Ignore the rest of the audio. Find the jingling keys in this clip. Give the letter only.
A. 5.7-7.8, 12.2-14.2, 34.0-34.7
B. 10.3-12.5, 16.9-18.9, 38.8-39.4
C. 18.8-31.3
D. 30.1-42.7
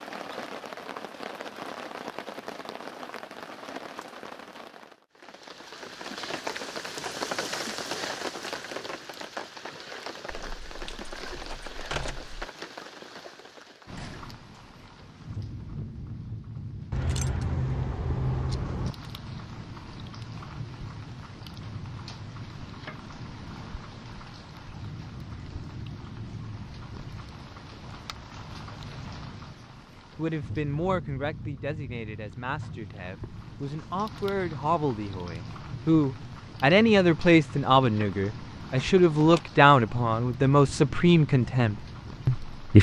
B.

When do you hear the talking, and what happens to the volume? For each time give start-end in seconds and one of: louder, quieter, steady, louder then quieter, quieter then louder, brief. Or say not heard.
30.1-42.7 louder.